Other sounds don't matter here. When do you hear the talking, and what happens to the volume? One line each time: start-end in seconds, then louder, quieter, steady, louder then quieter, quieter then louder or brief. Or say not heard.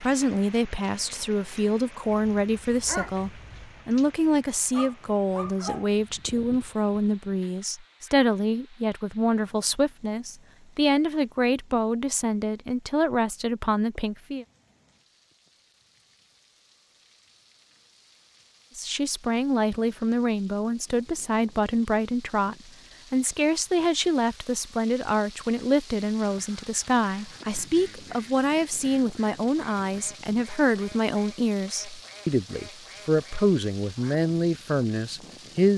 0.0-14.4 steady
18.8-35.7 steady.